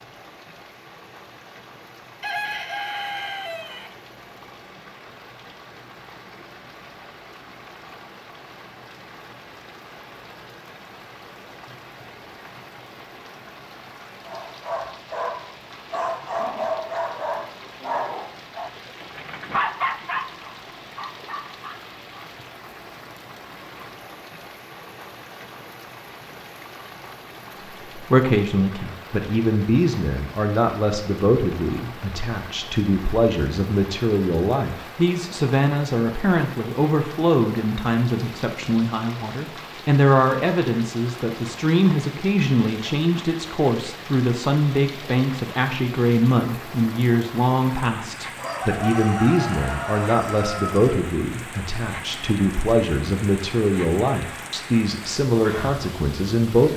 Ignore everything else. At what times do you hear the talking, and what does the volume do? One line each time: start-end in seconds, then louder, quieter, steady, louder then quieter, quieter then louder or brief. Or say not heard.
27.9-56.7 steady.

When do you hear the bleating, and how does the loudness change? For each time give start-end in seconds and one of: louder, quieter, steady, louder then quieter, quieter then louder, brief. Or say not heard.
not heard.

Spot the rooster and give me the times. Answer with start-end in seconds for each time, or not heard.
2.2-3.9, 48.4-51.0.